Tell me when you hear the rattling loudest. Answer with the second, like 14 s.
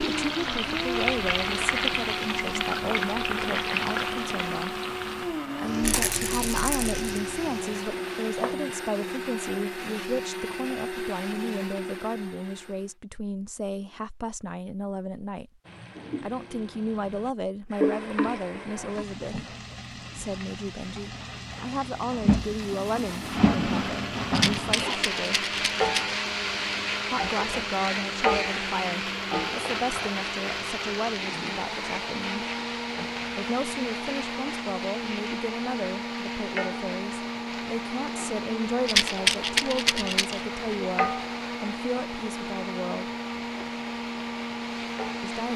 39 s.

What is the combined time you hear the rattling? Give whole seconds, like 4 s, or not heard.
5 s.